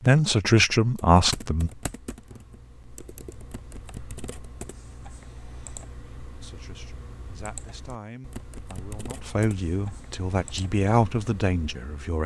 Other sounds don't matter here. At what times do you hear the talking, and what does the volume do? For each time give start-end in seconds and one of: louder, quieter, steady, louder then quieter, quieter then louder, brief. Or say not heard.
0.0-1.7 brief
6.4-12.2 louder.